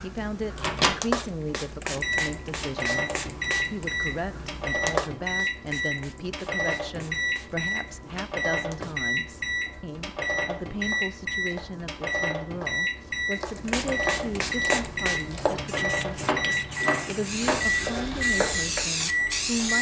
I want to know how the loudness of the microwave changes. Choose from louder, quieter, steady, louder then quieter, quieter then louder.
steady.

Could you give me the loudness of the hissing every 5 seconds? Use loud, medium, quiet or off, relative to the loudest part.
loud, quiet, loud, loud.